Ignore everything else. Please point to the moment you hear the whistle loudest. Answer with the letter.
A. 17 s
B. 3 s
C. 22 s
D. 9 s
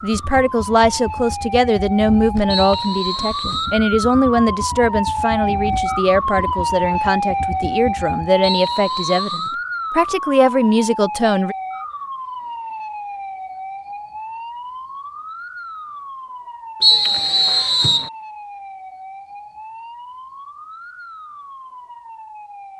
A.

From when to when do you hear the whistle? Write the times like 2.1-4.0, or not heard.
2.5-3.8, 8.4-9.6, 16.8-18.1.